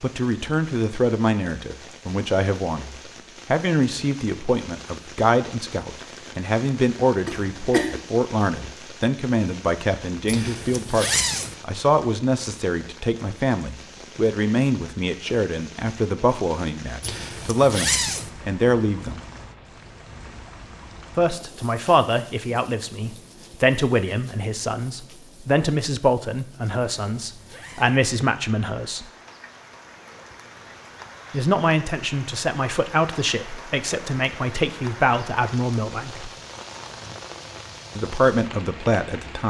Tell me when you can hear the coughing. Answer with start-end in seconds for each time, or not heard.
7.2-7.9.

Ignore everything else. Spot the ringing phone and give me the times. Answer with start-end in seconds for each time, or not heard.
not heard.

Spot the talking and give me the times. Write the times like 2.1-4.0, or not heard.
0.0-19.2, 21.1-29.1, 31.3-36.3, 38.0-39.4.